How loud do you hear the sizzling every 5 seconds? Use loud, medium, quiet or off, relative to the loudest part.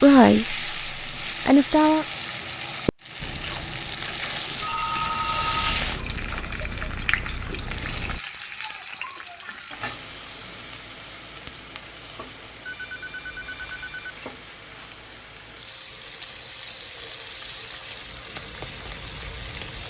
loud, loud, medium, medium.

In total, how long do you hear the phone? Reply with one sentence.
The phone can be heard for 3 seconds in total.